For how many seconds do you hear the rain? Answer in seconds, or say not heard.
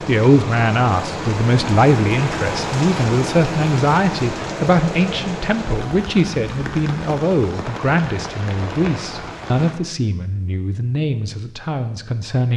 10 s.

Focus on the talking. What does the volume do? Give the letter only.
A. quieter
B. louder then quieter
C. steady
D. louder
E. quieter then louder
A.